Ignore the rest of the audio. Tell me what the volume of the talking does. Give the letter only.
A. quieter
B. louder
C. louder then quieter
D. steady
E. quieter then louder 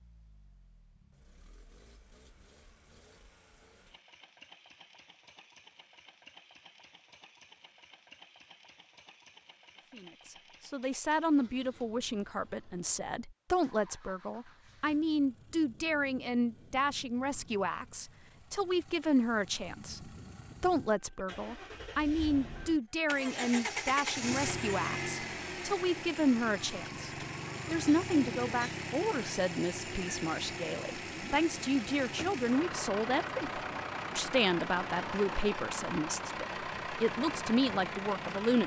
D.